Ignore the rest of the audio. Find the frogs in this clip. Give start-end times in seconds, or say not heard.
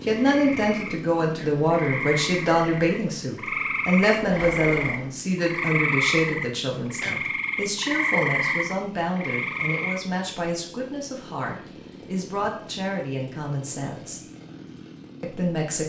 0.0-10.0.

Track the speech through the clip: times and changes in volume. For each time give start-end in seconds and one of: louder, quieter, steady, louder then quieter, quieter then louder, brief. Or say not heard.
0.1-14.2 quieter
15.2-15.8 brief.